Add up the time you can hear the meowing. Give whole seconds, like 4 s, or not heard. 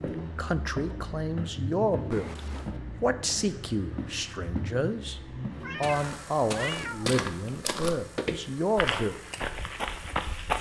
2 s.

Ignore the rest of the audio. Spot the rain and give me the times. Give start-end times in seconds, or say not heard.
not heard.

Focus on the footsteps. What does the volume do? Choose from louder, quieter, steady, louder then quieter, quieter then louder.
louder.